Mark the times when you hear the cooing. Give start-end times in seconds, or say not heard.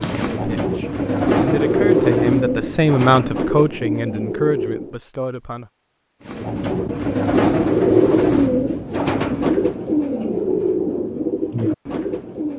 0.0-5.0, 6.2-12.5.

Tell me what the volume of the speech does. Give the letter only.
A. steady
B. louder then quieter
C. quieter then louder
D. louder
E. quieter
B.